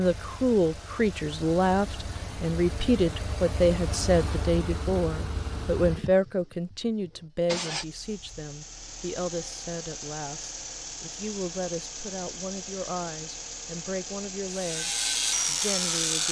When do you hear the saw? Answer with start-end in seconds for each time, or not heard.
14.5-16.2.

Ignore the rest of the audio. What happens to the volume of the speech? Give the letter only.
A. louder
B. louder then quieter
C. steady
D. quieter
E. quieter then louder
D.